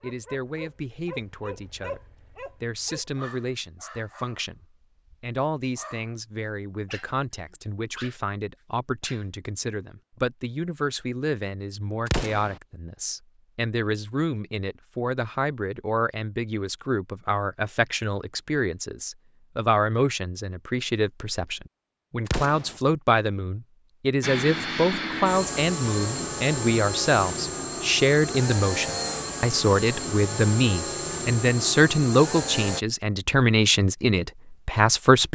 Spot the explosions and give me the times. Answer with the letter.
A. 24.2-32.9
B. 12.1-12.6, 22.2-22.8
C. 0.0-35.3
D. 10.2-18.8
B.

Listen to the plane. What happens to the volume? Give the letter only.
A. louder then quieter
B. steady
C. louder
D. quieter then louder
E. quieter
B.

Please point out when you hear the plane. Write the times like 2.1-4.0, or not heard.
24.2-32.9.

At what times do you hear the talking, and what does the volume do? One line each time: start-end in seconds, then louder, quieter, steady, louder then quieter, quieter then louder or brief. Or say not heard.
0.0-35.3 louder.